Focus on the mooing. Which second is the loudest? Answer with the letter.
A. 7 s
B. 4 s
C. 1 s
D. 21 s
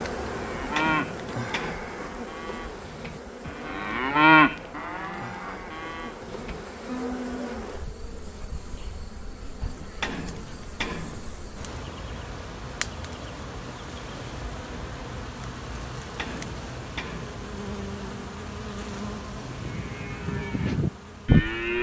B.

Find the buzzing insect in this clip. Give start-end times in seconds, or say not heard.
0.0-21.7.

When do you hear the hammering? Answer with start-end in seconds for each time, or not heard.
0.6-1.9, 9.6-11.3, 16.0-17.4.